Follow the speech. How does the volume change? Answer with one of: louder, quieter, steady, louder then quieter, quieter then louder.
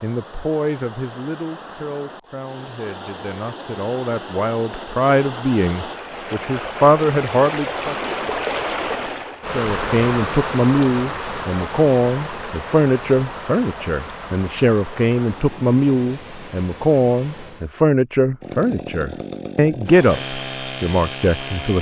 louder.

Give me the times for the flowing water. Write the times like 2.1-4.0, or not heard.
0.0-17.7.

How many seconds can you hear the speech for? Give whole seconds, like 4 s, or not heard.
20 s.